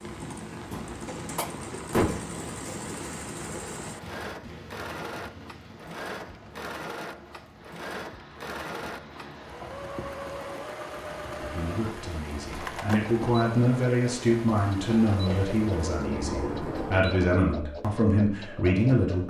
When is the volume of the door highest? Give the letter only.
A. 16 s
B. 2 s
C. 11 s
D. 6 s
B.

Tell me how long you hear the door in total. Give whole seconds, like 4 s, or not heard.
4 s.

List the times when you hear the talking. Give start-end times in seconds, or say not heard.
11.4-19.2.